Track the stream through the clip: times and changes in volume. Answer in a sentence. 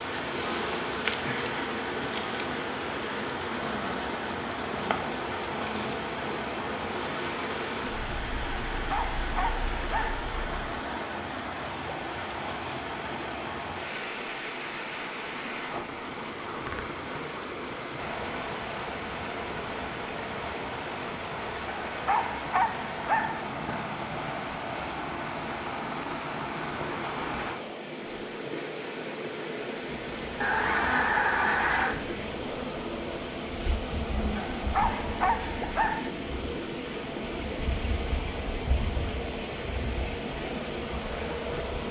The stream can be heard from 0.0 to 41.8 s, at a steady volume.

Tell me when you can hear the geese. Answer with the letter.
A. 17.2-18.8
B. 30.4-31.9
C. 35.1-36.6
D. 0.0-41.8
B.